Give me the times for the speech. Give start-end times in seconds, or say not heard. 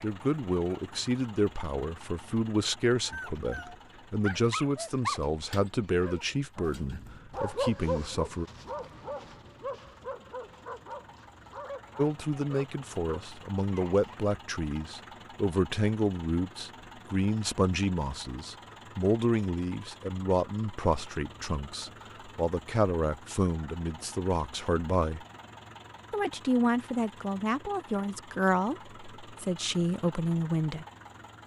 0.0-8.4, 11.9-25.2, 26.1-30.9.